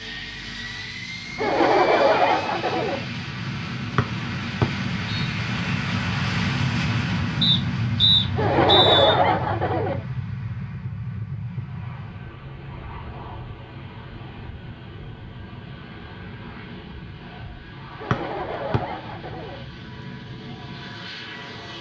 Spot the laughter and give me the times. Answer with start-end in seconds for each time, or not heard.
1.4-3.0, 8.3-10.1, 17.9-19.6.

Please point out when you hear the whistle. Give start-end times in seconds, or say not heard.
4.0-5.3, 7.4-9.2, 18.1-18.8.